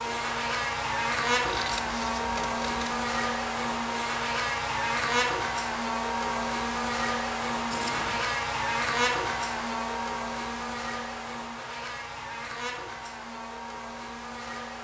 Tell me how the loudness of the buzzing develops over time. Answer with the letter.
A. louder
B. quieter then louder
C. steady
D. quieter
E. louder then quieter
D.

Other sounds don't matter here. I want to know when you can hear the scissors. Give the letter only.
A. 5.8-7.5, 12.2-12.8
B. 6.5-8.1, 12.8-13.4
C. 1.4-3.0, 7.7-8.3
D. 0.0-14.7
C.